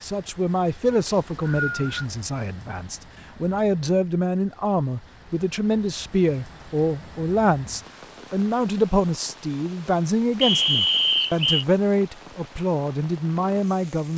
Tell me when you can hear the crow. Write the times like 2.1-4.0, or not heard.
not heard.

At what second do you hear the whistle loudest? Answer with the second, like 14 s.
11 s.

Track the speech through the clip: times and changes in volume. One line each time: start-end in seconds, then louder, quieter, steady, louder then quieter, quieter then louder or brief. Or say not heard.
0.0-14.1 steady.